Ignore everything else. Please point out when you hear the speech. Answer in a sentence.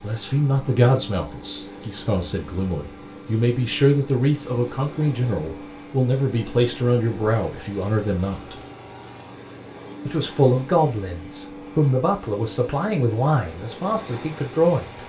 The speech can be heard from 0.0 to 8.6 s and from 10.1 to 15.0 s.